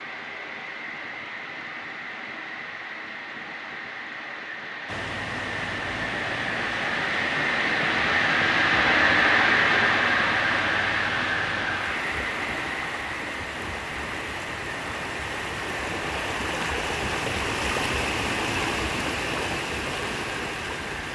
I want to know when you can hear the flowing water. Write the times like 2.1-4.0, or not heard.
4.8-21.1.